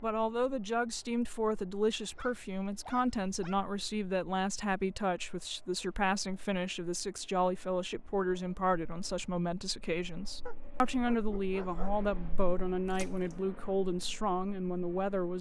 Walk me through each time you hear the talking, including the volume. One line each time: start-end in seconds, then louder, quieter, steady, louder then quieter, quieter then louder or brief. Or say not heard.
0.0-15.3 steady.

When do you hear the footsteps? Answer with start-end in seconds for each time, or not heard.
not heard.